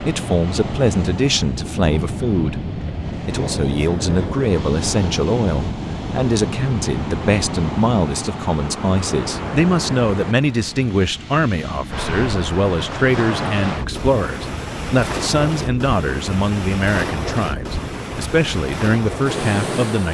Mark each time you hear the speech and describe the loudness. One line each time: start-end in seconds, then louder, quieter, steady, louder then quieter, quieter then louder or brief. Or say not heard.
0.0-20.0 steady.